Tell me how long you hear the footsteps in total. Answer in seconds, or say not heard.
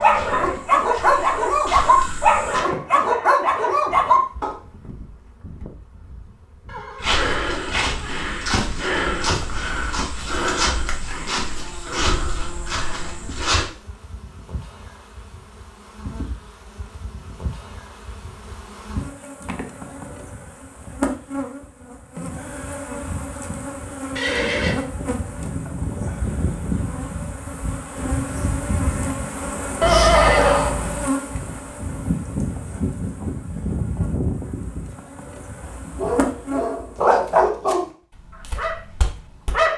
11 s.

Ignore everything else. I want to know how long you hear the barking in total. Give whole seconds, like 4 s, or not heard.
9 s.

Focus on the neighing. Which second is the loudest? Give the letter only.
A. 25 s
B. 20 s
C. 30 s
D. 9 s
C.